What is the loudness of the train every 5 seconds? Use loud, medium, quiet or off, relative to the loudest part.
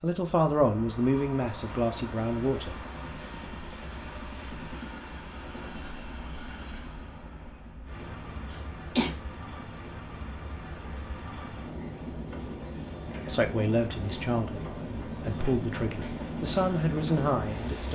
medium, medium, loud, loud.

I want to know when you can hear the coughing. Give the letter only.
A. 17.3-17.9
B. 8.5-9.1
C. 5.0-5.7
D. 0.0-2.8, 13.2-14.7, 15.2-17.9
B.